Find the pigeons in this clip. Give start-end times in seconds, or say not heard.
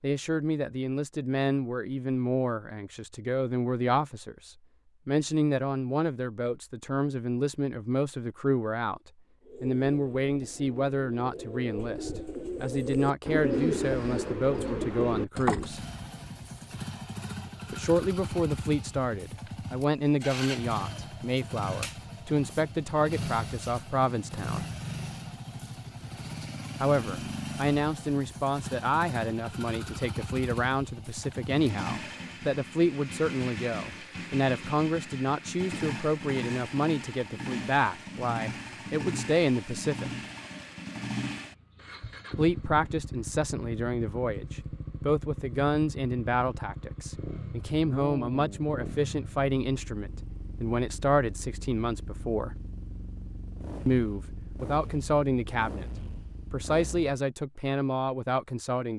9.4-15.8.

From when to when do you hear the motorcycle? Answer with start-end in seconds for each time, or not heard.
15.6-57.2.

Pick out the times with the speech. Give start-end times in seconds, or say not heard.
0.0-15.8, 17.7-24.6, 26.8-40.1, 42.4-52.5, 53.9-55.9, 56.5-58.9.